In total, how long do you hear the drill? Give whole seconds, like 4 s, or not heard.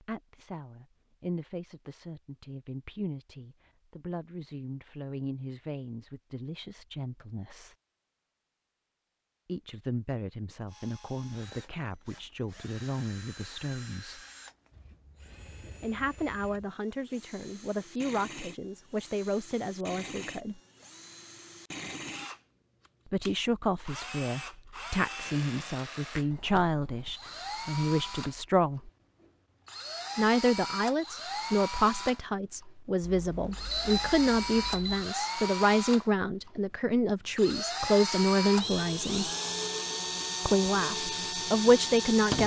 32 s.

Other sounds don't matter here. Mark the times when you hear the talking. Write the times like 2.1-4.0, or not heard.
0.0-7.8, 9.4-14.2, 15.8-20.6, 23.1-28.9, 30.1-39.2, 40.5-42.4.